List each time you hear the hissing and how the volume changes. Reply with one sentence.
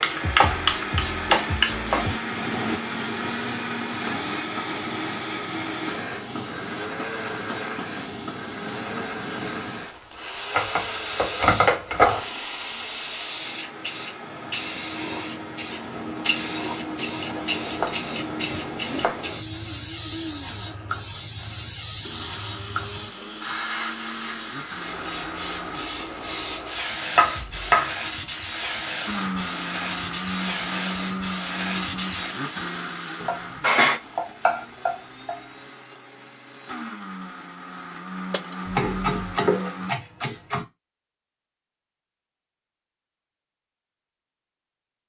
You can hear the hissing from 0.0 to 34.0 s, at a steady volume.